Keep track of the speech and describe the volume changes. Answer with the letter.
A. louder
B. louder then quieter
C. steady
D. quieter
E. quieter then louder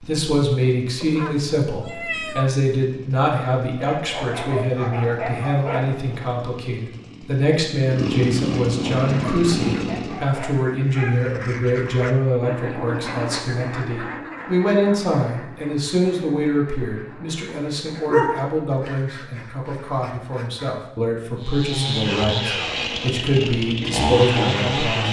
C.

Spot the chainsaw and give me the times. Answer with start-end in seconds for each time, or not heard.
0.0-10.3, 21.4-25.0.